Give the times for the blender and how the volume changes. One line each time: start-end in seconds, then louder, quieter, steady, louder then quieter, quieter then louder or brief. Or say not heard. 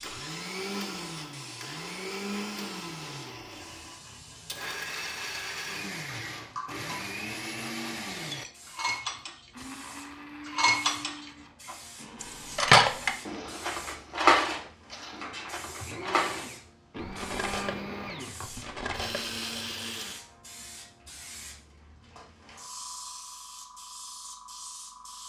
0.0-20.2 quieter then louder.